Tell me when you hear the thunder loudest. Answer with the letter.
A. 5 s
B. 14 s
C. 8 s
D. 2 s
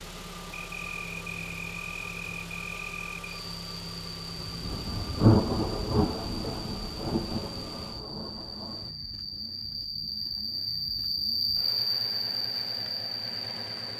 A.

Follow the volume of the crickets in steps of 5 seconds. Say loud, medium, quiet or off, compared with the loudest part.
medium, medium, loud.